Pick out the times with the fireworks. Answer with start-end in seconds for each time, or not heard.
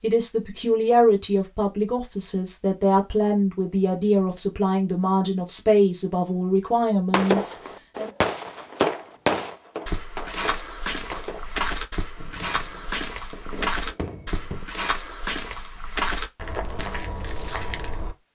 7.1-14.7.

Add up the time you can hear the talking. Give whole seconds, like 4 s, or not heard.
8 s.